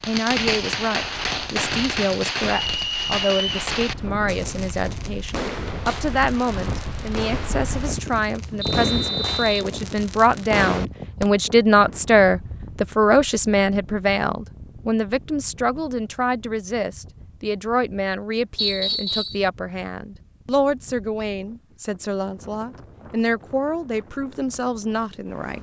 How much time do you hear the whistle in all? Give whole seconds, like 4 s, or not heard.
3 s.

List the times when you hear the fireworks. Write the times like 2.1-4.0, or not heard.
0.0-11.3.